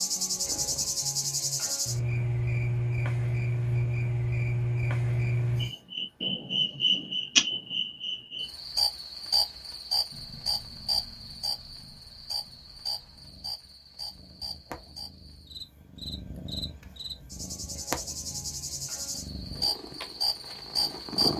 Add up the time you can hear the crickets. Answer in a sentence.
You can hear the crickets for 21 seconds altogether.